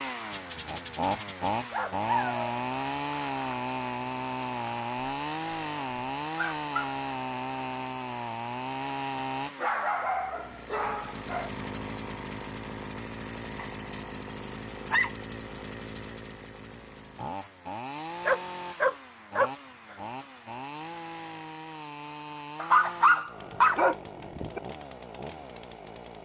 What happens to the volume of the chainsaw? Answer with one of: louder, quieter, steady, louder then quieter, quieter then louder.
quieter.